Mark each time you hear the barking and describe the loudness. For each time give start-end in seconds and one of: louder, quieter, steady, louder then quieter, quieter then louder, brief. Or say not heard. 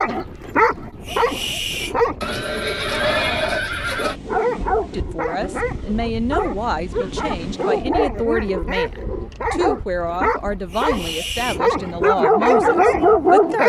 0.0-2.1 brief
4.2-13.6 louder.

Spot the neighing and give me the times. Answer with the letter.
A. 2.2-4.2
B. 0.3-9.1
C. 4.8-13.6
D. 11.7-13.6
A.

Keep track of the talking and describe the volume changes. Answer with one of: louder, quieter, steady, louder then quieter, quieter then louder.
steady.